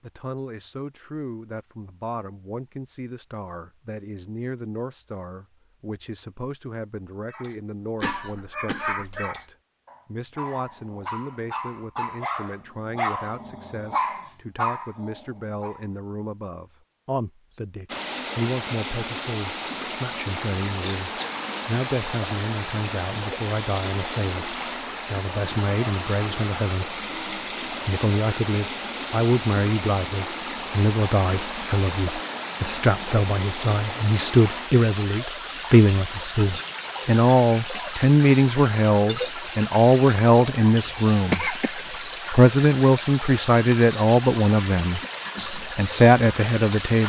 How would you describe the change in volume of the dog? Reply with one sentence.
The volume of the dog goes down, then up.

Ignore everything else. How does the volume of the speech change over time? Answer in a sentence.
The volume of the speech goes up.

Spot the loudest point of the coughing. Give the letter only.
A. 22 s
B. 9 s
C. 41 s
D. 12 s
C.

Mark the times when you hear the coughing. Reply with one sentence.
The coughing can be heard from 8.0 to 9.2 s, from 20.8 to 21.4 s and from 40.6 to 41.8 s.